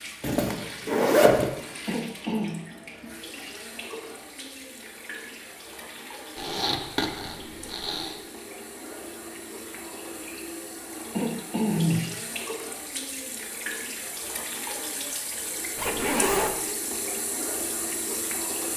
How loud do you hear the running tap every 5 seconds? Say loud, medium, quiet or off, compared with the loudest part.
medium, medium, loud, loud.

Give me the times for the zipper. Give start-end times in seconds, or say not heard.
0.2-1.4, 6.3-8.2, 15.8-16.6.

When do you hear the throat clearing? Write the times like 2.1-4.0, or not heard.
1.9-2.5, 11.1-12.1.